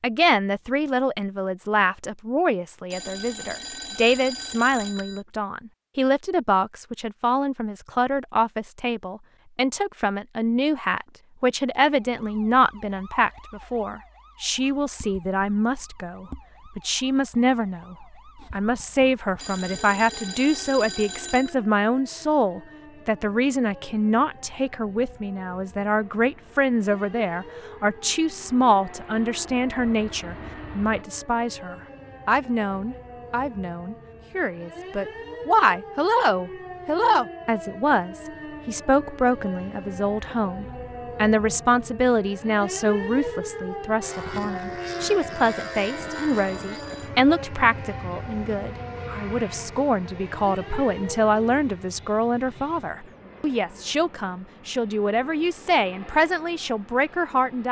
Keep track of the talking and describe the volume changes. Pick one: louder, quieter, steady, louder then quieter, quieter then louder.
steady.